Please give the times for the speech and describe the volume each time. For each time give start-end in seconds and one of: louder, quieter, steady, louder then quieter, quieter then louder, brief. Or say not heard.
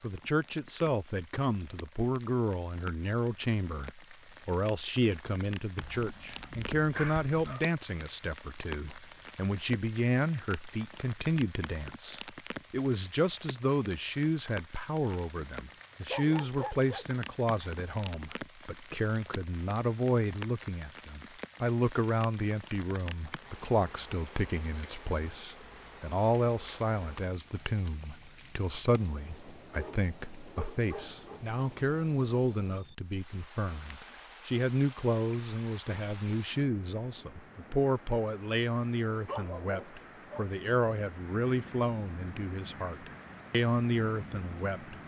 0.0-45.0 steady.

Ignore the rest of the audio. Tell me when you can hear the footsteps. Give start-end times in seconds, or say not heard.
not heard.